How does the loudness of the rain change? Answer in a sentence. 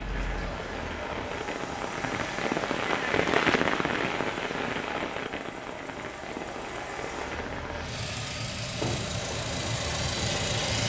The volume of the rain goes up, then down.